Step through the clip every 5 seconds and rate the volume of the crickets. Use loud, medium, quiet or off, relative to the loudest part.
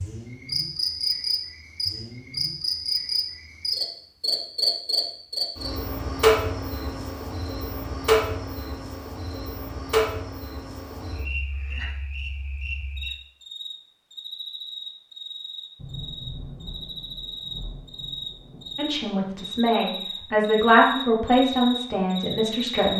loud, loud, medium, medium, medium.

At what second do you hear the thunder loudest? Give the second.
16 s.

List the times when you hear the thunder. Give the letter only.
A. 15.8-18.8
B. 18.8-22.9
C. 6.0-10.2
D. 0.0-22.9
A.